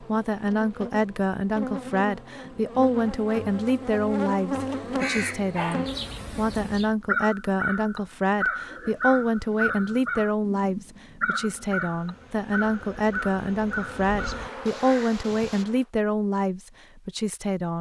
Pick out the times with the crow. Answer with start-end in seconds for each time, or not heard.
4.8-15.7.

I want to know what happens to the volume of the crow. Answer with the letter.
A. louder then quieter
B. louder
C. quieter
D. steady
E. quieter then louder
C.